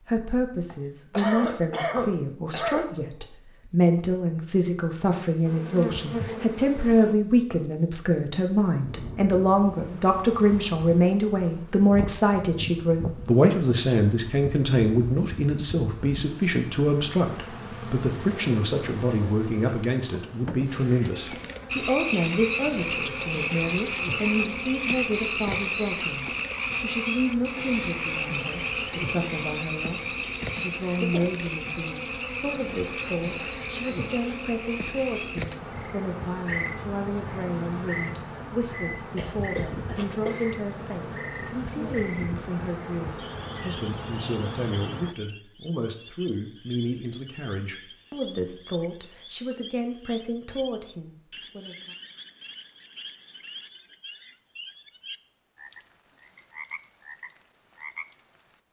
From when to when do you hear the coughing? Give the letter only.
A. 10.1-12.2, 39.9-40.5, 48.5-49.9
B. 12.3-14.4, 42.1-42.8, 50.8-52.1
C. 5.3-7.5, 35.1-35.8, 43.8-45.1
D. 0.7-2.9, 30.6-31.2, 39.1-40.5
D.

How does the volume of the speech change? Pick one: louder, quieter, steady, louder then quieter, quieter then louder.
quieter.